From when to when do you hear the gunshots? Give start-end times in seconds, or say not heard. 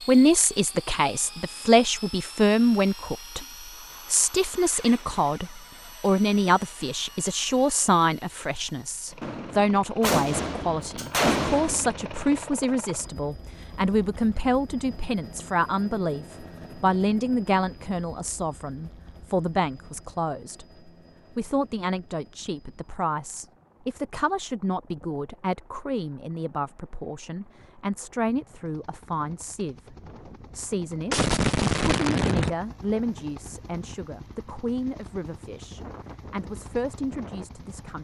9.2-12.4, 31.1-32.5.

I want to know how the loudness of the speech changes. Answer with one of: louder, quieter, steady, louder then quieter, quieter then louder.
quieter.